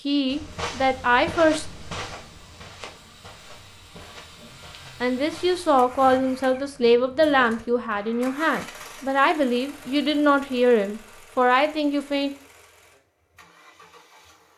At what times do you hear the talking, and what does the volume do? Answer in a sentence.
You can hear the talking briefly from 0.1 to 1.6 s; and from 5.0 to 12.3 s, at a steady volume.